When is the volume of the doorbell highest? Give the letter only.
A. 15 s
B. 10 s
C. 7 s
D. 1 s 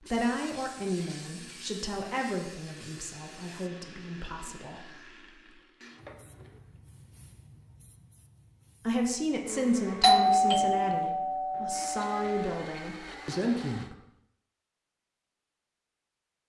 B.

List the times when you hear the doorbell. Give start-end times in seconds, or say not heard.
10.0-12.4.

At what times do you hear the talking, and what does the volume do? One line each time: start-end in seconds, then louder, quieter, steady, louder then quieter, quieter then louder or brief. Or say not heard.
0.0-5.2 quieter
8.8-13.9 quieter then louder.